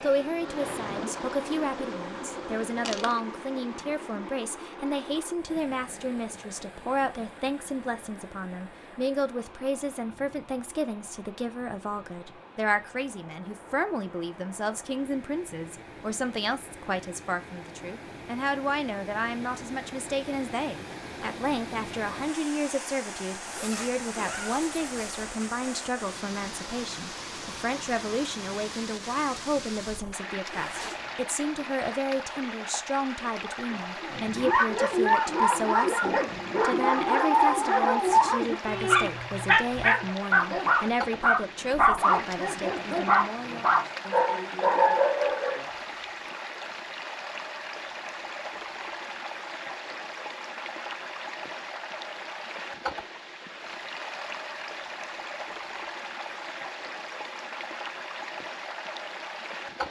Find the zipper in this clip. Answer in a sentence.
The zipper can be heard from 23.4 to 25.2 s and from 30.4 to 31.2 s.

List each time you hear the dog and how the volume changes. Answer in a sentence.
You can hear the dog from 34.0 to 45.6 s, at a steady volume.